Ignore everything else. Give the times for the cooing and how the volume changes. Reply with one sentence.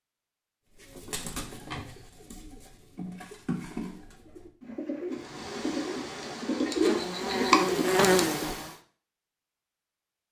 The cooing can be heard from 0.7 to 8.6 s, getting louder.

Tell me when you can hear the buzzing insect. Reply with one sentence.
The buzzing insect can be heard from 5.1 to 8.8 s.